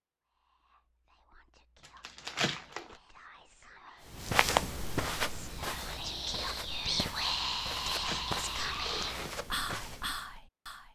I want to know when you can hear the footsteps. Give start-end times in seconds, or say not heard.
4.1-10.4.